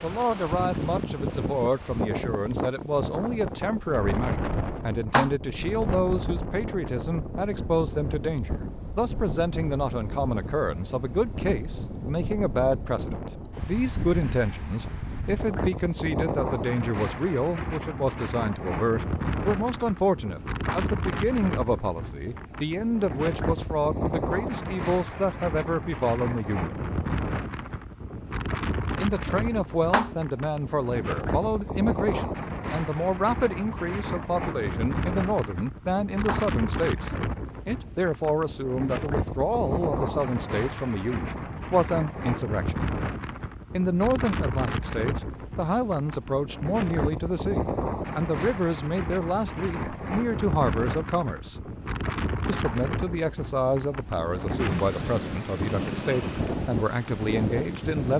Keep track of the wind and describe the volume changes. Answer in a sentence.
The loudness of the wind stays about the same.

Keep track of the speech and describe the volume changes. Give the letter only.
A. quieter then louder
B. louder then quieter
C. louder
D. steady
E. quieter
D.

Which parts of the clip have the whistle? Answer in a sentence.
You can't hear the whistle here.